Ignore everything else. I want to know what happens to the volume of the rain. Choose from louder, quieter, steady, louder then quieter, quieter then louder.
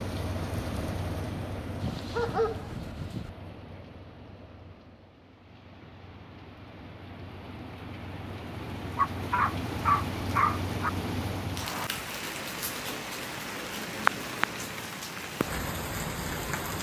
quieter then louder.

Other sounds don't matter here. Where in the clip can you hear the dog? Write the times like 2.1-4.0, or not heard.
1.8-3.3, 8.9-10.9.